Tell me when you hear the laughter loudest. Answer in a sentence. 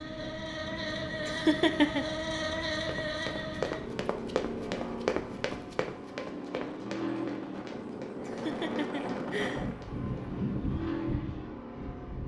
The volume of the laughter peaks at 2 seconds.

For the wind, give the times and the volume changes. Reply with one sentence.
You can hear the wind from 0.0 to 12.2 s, getting louder.